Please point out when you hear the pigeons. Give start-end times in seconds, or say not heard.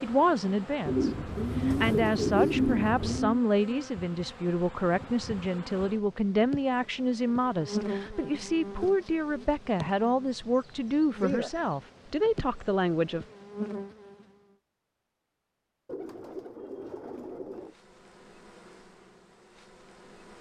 0.8-3.4, 15.8-17.8.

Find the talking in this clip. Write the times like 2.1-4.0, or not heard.
0.0-13.2.